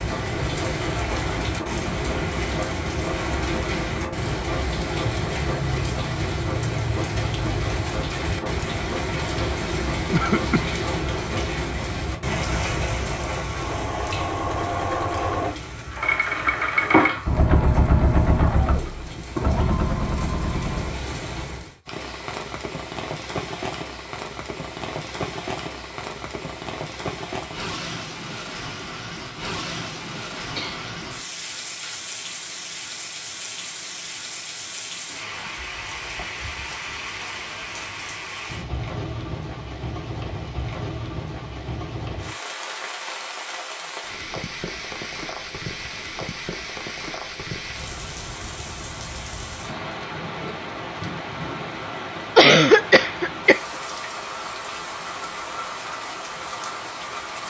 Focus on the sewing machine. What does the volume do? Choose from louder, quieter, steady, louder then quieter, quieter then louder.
louder.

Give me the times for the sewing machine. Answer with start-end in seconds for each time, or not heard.
0.0-21.0.